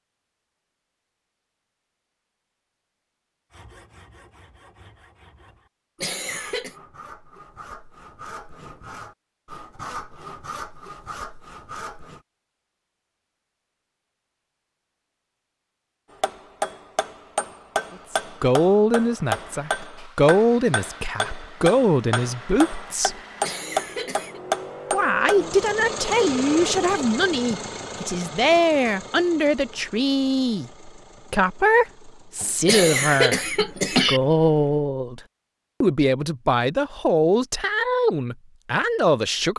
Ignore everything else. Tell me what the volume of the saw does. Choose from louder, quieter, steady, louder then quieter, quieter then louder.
louder.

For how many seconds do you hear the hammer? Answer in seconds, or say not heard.
9 s.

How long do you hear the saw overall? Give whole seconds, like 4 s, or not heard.
9 s.